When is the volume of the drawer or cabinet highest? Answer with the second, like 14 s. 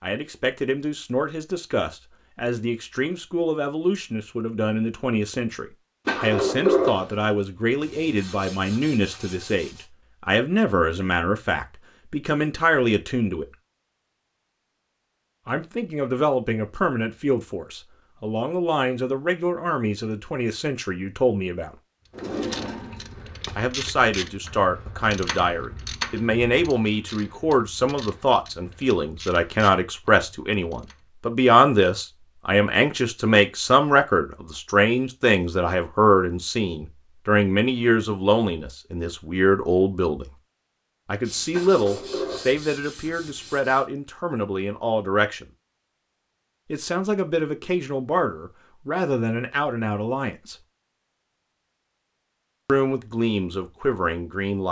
7 s.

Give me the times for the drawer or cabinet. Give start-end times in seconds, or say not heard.
6.0-7.0, 22.1-23.6, 41.5-42.5.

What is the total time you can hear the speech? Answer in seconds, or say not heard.
47 s.